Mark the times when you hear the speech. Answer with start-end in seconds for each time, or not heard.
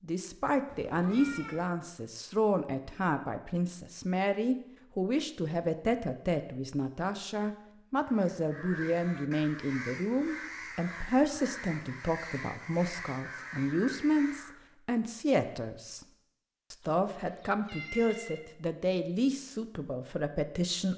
0.0-16.1, 16.7-20.9.